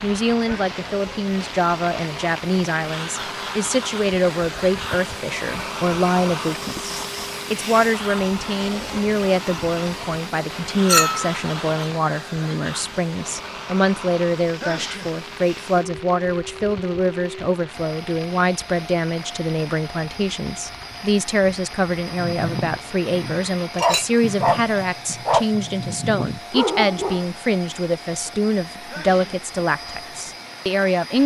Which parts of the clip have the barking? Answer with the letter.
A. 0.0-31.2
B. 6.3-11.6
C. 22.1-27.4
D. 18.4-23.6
C.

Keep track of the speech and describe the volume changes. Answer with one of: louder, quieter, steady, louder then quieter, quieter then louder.
steady.